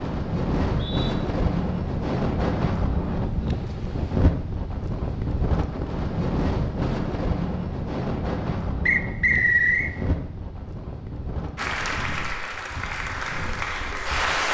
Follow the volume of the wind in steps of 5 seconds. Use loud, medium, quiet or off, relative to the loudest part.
loud, loud, medium.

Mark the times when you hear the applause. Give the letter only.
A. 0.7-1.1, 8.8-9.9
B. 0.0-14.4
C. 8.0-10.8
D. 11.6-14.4
D.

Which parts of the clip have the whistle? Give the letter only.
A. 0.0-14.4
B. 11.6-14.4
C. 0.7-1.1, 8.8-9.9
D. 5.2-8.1
C.